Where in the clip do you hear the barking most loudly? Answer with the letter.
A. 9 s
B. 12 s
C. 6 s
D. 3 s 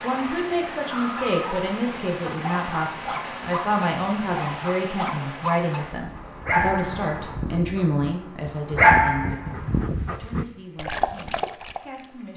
A.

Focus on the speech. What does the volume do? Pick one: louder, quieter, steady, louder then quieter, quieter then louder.
quieter.